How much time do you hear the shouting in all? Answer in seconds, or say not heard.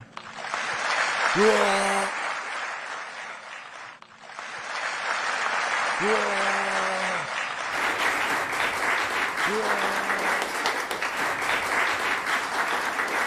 3 s.